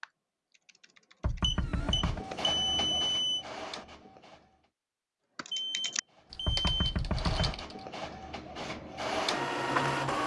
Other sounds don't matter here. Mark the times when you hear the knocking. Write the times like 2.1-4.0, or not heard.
1.2-2.2, 6.5-7.7.